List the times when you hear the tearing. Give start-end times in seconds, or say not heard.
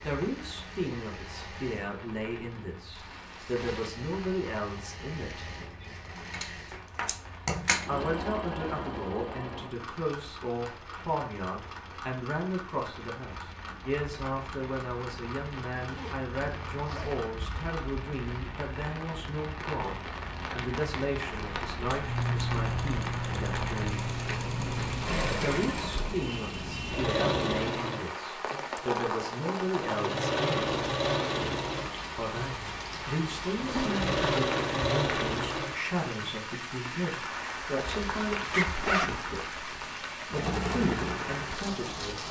not heard.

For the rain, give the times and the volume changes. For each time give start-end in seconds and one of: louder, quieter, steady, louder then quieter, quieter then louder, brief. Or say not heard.
0.0-42.2 louder.